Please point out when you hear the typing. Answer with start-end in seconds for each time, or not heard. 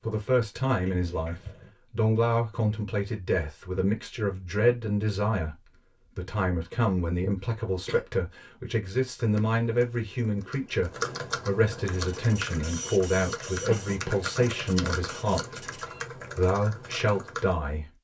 9.2-17.6.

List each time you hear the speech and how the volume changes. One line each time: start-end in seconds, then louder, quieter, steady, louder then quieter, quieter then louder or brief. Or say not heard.
0.0-17.9 steady.